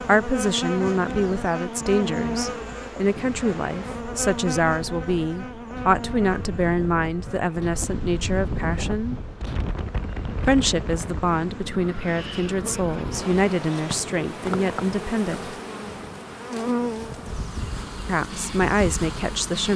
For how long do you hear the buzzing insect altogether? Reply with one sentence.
The buzzing insect can be heard for 20 seconds in total.